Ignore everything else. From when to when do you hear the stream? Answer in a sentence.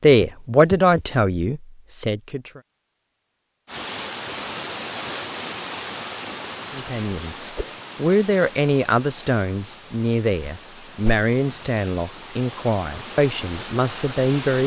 You can hear the stream from 3.6 to 14.6 s.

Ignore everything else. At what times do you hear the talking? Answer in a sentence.
You can hear the talking from 0.0 to 2.6 s and from 6.7 to 14.6 s.